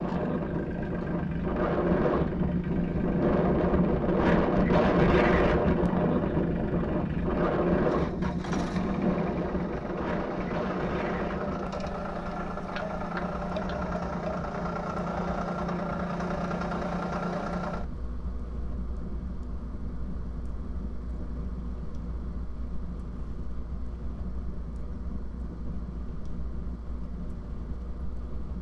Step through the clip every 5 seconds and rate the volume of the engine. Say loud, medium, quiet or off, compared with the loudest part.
medium, loud, loud, loud, quiet, quiet.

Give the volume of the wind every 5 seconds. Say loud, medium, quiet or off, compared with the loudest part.
loud, loud, medium, quiet, quiet, quiet.